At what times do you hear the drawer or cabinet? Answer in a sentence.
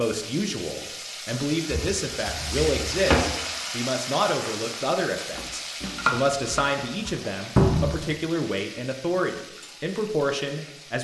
You can hear the drawer or cabinet from 1.7 to 3.2 s and from 7.5 to 8.0 s.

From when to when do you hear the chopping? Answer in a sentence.
The chopping can be heard from 5.3 to 7.2 s.